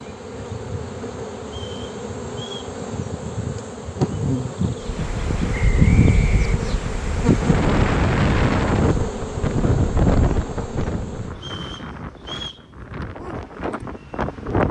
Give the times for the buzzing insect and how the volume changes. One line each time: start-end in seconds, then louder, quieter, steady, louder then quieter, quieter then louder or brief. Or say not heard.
0.0-11.3 louder then quieter.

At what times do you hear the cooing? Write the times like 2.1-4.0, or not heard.
not heard.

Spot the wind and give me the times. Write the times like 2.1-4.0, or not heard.
4.8-14.6.